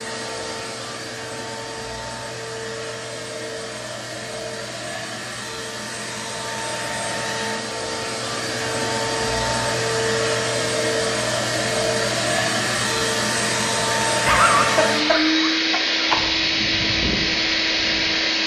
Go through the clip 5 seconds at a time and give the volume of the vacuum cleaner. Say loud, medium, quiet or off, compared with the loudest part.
medium, medium, loud, loud.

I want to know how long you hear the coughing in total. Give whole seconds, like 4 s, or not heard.
2 s.